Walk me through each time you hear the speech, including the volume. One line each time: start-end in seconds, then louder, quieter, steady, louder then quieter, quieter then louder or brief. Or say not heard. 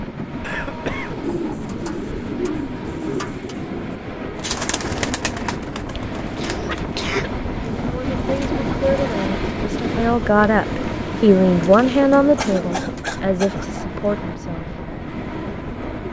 7.9-14.8 louder then quieter.